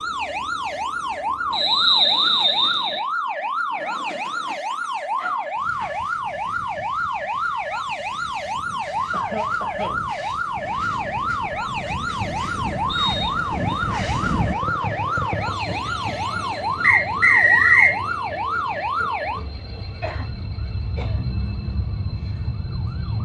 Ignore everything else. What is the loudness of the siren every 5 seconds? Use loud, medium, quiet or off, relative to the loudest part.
loud, loud, loud, loud, medium.